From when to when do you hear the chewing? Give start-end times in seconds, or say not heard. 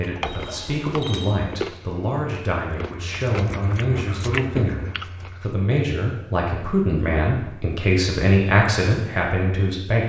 0.0-5.7.